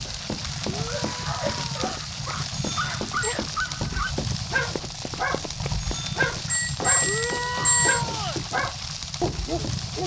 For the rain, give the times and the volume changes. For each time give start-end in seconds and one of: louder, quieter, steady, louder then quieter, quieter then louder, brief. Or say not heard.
0.0-10.0 steady.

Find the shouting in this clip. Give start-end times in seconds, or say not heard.
0.7-1.9, 7.0-8.4.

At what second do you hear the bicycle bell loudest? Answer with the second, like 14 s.
8 s.